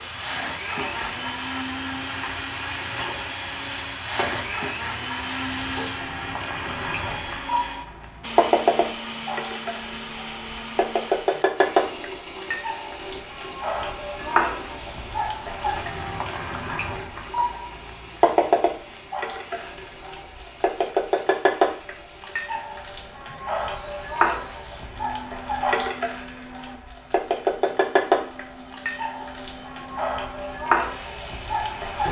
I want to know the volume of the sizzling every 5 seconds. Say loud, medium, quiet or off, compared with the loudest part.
medium, loud, loud, loud, loud, loud, loud.